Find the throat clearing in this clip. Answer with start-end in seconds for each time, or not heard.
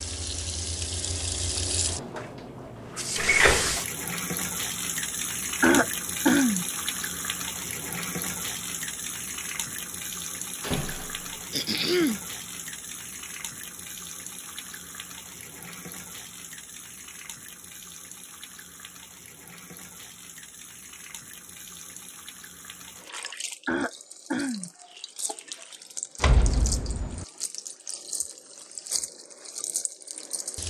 5.6-6.7, 11.5-12.2, 23.6-24.7.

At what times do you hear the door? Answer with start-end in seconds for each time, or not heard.
3.1-3.8, 10.6-11.4, 26.2-27.2.